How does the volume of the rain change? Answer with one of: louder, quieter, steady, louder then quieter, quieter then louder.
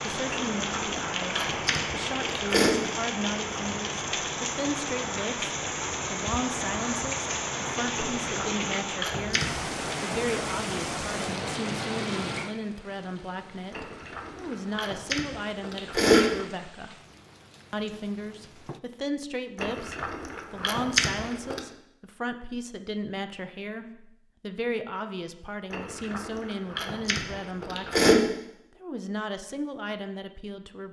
quieter.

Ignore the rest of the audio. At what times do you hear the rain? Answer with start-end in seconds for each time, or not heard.
0.0-18.8.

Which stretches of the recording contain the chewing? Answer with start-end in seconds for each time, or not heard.
0.3-2.8, 8.0-9.9, 13.7-16.4, 19.6-21.6, 25.7-28.1.